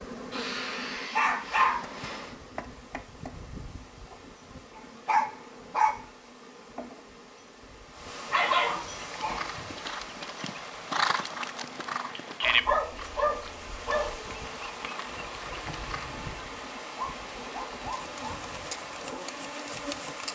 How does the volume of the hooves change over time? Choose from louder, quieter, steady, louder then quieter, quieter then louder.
louder then quieter.